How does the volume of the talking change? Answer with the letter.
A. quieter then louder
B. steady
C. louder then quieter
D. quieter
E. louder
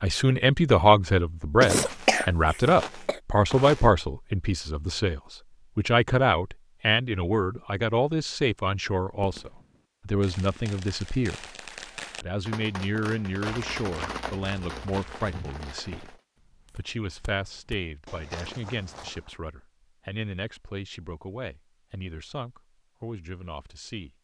D.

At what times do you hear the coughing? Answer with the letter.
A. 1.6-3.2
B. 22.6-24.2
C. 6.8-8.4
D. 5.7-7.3
A.